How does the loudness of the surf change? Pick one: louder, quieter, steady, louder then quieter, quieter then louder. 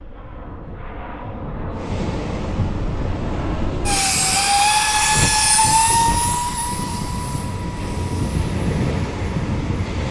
quieter then louder.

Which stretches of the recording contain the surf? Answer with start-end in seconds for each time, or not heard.
1.7-10.0.